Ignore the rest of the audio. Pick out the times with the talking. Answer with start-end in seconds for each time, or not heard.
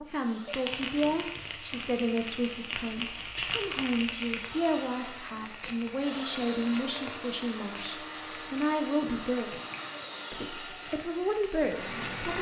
0.0-9.6, 10.3-12.3.